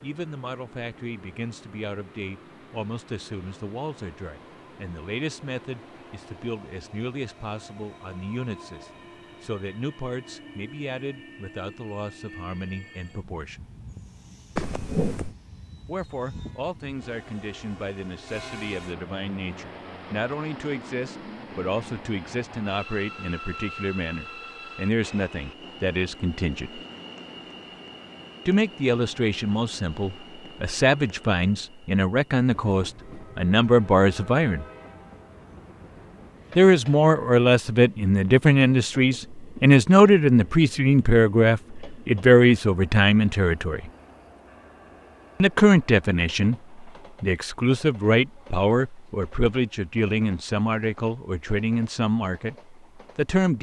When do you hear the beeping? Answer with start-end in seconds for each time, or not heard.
14.6-15.3.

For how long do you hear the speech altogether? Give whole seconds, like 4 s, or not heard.
46 s.